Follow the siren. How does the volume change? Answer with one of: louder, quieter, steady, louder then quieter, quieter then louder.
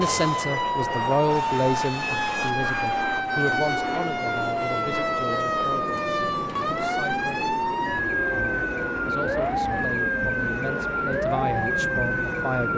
steady.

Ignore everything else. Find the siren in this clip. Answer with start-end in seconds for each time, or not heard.
0.0-12.7.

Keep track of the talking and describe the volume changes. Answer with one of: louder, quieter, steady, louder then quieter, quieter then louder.
quieter then louder.